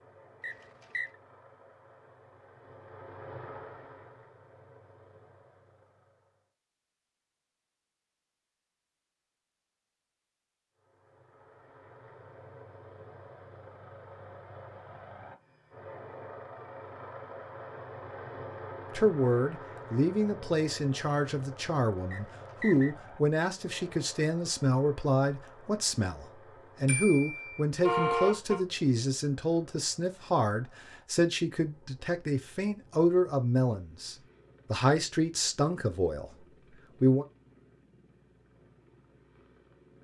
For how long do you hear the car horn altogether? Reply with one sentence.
You can hear the car horn for 2 seconds altogether.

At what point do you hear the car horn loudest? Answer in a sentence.
The volume of the car horn peaks at 28 seconds.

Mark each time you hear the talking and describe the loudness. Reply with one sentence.
You can hear the talking from 18.9 to 37.2 s, at a steady volume.